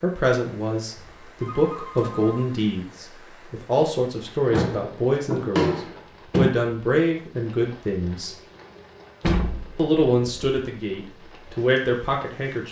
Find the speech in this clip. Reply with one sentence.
The speech can be heard from 0.0 to 8.3 s and from 9.8 to 12.6 s.